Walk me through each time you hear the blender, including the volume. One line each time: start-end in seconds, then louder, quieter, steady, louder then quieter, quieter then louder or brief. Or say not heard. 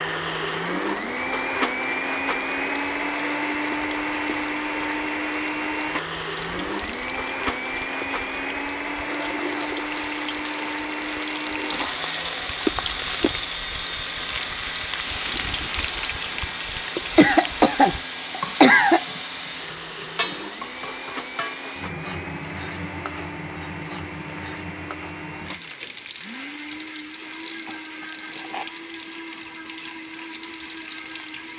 0.0-31.5 quieter.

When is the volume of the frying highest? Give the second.
13 s.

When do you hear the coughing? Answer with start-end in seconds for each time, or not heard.
17.1-19.1.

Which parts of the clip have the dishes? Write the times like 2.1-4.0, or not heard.
not heard.